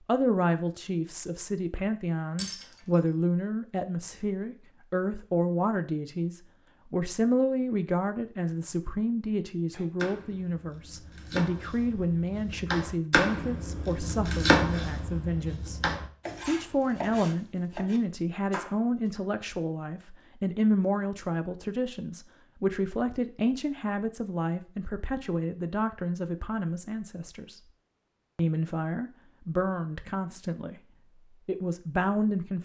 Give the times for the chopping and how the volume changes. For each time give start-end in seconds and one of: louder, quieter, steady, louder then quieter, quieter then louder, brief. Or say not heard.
9.7-19.2 louder then quieter.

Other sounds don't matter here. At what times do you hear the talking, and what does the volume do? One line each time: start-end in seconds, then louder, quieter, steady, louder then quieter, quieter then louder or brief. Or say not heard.
0.1-27.6 steady
28.4-32.6 quieter then louder.